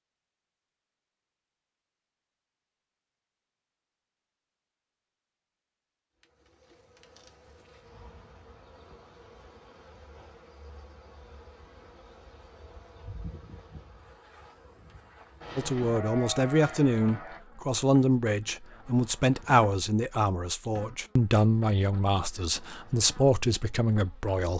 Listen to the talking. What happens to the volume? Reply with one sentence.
The loudness of the talking stays about the same.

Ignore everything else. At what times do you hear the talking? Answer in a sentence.
You can hear the talking from 15.6 to 24.5 s.